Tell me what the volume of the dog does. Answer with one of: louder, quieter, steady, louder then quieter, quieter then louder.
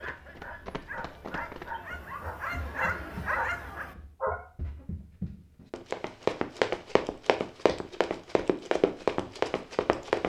louder.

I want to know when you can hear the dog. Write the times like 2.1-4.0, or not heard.
0.0-4.5.